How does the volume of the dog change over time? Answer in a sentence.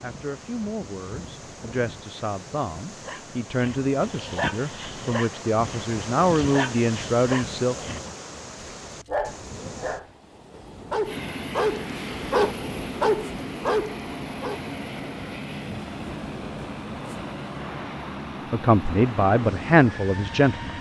The loudness of the dog goes up.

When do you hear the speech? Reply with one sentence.
You can hear the speech from 0.0 to 7.8 s and from 18.5 to 20.7 s.